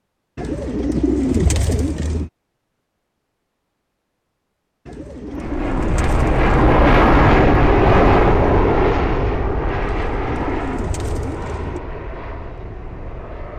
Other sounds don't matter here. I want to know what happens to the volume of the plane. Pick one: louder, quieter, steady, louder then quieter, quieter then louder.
quieter.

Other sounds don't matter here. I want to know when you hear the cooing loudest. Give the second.
1 s.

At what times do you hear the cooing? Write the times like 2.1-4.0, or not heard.
0.3-2.3, 4.8-6.5, 9.8-11.8.